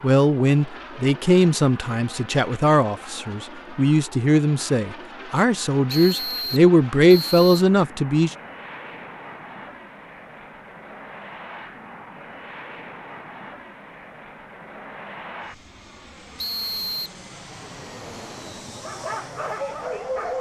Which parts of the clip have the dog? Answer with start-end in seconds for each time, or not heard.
18.8-20.3.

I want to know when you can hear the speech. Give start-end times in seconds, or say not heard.
0.0-8.3.